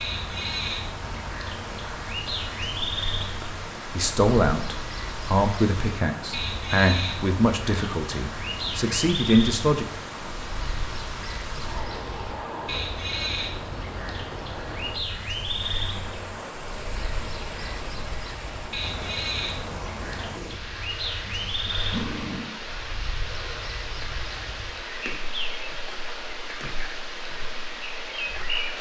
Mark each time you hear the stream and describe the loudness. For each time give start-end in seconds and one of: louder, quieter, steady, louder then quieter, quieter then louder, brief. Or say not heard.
0.0-28.7 steady.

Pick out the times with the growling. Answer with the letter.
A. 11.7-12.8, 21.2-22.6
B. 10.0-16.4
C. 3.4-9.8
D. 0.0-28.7
A.